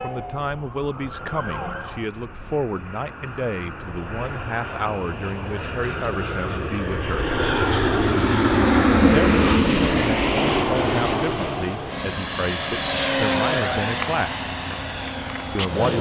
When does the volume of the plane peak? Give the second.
9 s.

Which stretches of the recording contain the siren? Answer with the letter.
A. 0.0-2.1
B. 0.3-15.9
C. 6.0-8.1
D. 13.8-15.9
A.